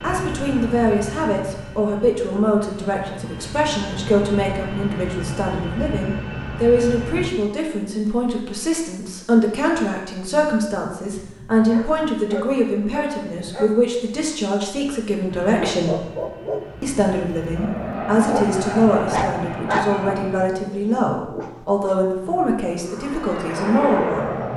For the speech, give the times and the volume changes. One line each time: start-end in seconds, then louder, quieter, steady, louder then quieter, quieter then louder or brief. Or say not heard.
0.0-16.1 steady
16.8-24.4 steady.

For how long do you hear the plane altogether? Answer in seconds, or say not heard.
15 s.